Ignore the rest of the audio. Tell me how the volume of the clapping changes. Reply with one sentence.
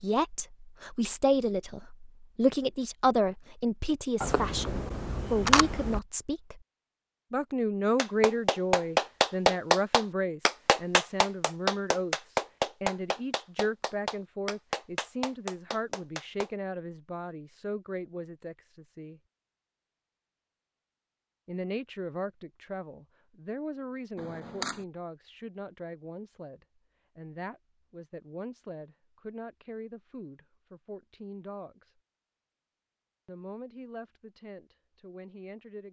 The loudness of the clapping goes down.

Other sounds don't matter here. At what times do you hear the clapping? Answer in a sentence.
The clapping can be heard from 8.0 to 16.5 s.